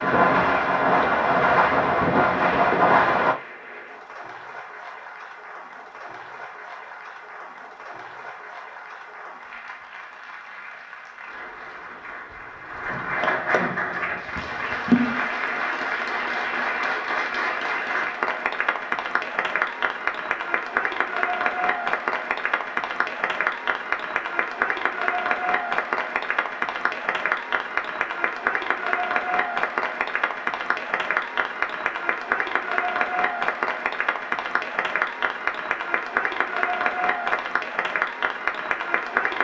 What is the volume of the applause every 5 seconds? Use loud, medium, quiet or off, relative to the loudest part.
quiet, quiet, loud, loud, loud, loud, loud, loud.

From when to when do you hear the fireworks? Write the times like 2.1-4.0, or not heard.
0.0-3.4.